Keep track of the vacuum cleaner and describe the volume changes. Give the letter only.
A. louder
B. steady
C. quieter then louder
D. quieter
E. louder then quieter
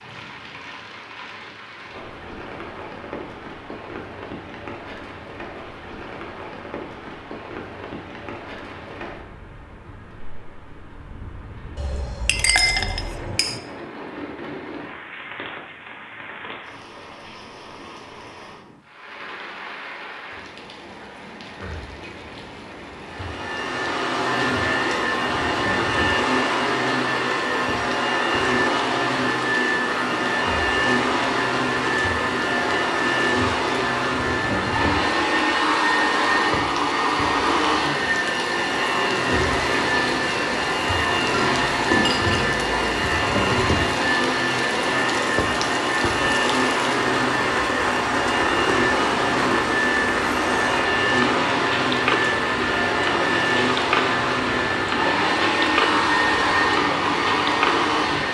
B.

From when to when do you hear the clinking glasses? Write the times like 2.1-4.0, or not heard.
11.8-13.6, 41.3-43.0.